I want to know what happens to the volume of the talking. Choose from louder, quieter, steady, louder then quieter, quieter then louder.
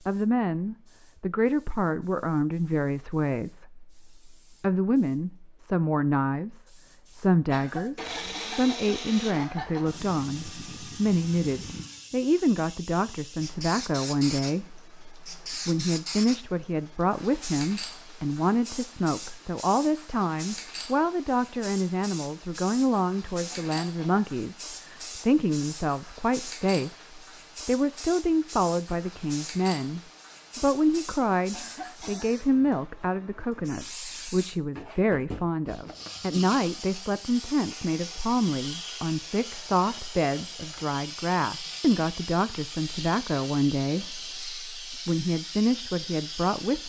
steady.